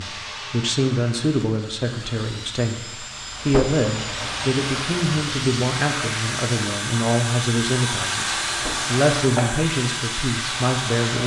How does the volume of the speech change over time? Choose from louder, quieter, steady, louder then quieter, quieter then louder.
steady.